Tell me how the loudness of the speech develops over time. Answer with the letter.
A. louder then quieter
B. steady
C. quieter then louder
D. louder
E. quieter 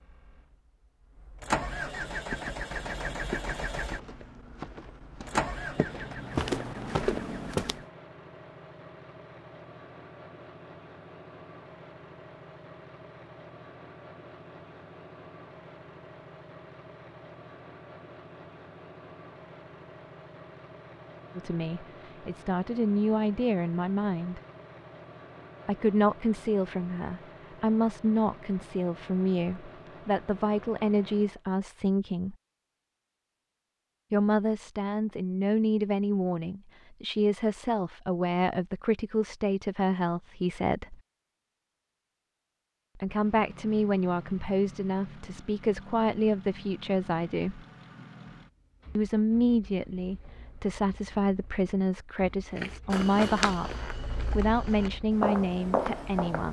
B.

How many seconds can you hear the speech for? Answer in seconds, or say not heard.
29 s.